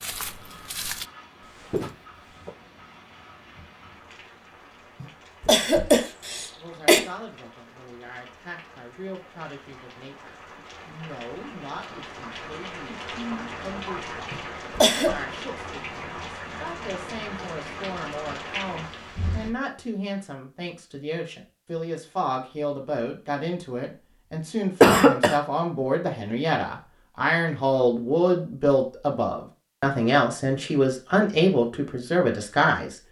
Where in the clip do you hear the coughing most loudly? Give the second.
25 s.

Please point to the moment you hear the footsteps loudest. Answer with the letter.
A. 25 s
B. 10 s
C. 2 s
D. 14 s
C.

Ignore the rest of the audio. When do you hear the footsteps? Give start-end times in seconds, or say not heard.
0.0-2.5.